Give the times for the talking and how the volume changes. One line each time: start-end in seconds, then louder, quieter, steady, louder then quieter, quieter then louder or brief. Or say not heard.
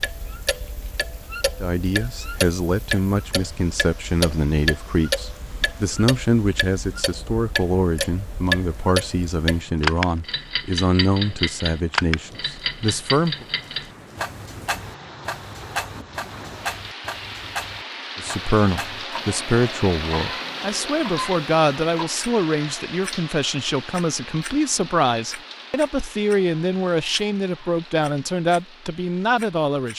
1.6-13.4 steady
18.1-29.9 steady.